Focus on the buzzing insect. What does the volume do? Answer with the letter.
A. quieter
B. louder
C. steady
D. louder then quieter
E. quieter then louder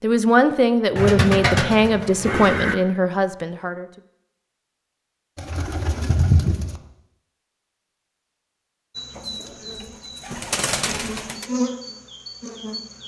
D.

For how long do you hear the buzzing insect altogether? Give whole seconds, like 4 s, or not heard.
4 s.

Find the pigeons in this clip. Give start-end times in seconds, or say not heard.
0.9-2.8, 5.3-6.8, 9.2-11.4.